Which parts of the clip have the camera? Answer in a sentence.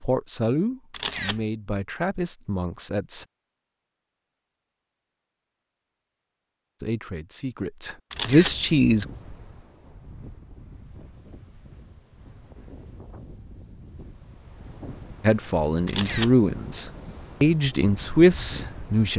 The camera can be heard from 0.9 to 1.4 s, from 8.1 to 8.6 s and from 15.8 to 16.4 s.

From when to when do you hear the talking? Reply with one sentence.
You can hear the talking from 0.0 to 3.2 s, from 6.8 to 9.1 s and from 15.2 to 19.1 s.